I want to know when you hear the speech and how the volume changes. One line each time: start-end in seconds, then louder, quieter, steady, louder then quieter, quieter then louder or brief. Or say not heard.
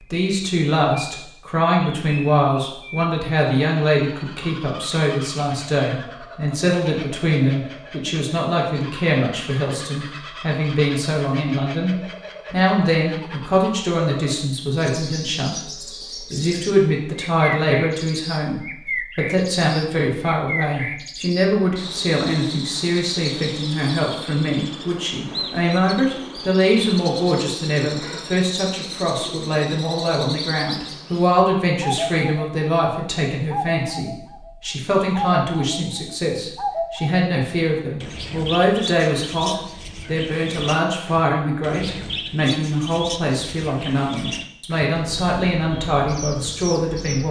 0.0-47.2 steady.